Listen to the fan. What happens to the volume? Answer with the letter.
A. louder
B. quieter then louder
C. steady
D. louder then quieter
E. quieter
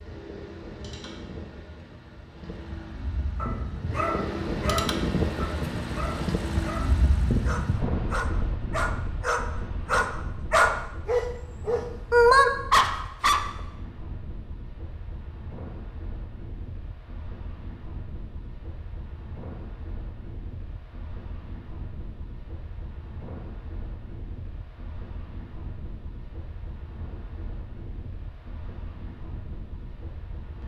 E.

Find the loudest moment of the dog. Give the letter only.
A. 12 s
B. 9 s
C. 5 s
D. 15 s
A.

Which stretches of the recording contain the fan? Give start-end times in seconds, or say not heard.
0.0-30.6.